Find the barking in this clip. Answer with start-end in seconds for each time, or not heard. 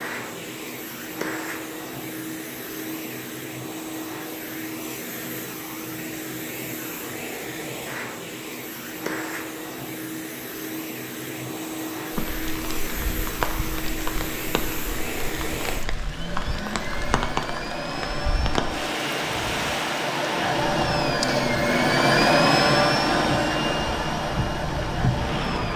not heard.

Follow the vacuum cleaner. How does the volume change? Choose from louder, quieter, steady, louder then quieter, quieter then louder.
louder.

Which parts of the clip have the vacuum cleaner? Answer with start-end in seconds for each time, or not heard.
0.0-25.7.